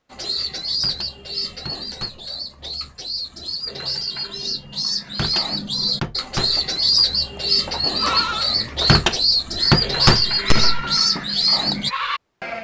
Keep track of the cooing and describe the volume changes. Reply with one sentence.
The volume of the cooing goes up.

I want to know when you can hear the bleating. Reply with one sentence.
The bleating can be heard from 6.4 to 12.5 s.